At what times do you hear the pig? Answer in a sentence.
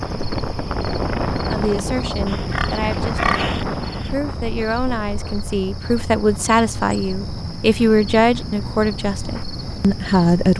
The pig can be heard from 2.2 to 4.2 s.